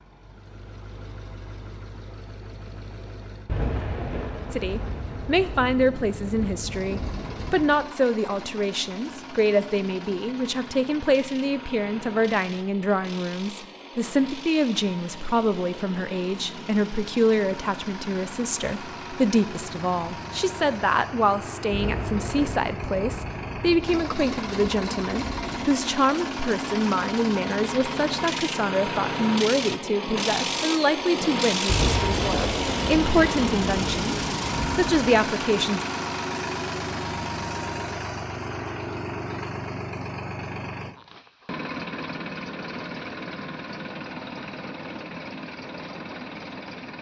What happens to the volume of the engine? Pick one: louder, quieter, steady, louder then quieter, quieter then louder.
louder then quieter.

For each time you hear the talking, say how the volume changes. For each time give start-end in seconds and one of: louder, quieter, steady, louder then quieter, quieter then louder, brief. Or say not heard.
4.5-35.9 steady.